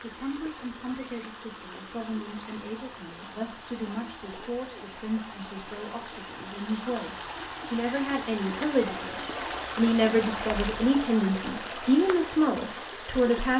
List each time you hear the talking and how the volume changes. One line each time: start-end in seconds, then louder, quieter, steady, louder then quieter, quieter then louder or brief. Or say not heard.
0.0-13.5 louder.